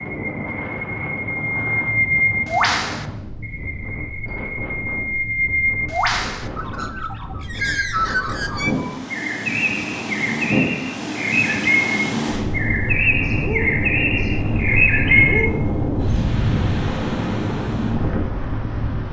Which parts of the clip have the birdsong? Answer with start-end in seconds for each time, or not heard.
0.0-15.5.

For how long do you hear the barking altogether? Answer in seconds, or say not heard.
not heard.